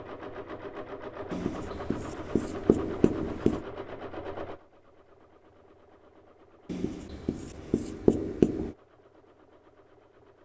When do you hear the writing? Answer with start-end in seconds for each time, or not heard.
1.3-3.6, 6.7-8.8.